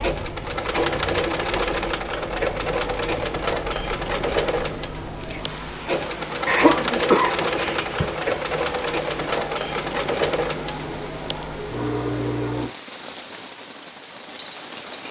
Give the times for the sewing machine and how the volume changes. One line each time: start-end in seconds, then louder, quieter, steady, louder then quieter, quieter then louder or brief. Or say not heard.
0.0-12.7 steady.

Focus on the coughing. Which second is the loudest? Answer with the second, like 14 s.
7 s.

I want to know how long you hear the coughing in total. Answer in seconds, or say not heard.
2 s.